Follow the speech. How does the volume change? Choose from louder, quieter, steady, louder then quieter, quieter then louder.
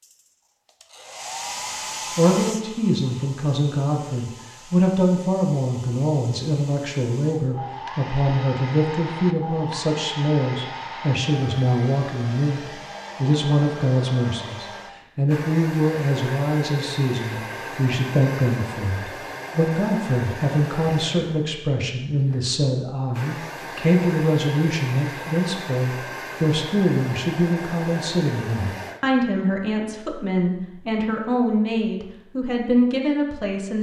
steady.